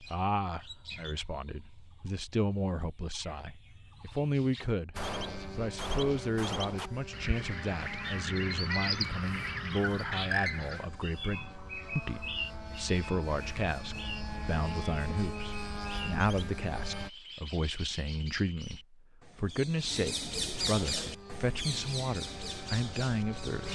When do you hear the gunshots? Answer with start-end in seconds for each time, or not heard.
5.0-6.9.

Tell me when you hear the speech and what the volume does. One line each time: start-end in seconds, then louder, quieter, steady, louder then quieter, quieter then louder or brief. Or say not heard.
0.0-23.7 steady.